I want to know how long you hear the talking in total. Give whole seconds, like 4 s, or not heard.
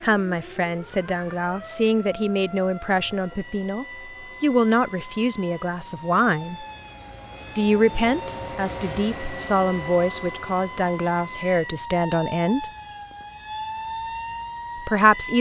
12 s.